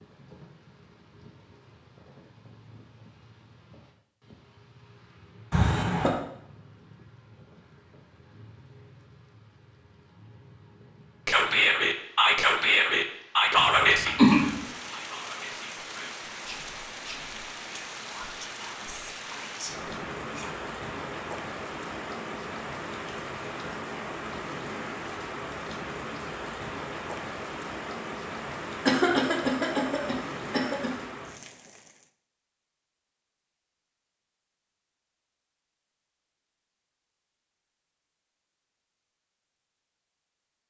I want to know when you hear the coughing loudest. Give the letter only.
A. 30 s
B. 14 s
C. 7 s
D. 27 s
B.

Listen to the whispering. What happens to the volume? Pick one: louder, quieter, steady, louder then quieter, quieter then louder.
quieter.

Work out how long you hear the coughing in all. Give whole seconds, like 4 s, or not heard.
4 s.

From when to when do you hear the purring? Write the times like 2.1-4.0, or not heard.
not heard.